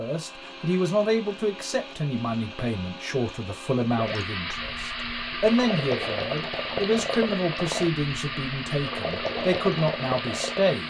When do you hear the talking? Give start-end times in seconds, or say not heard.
0.0-10.8.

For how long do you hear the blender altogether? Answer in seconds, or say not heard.
11 s.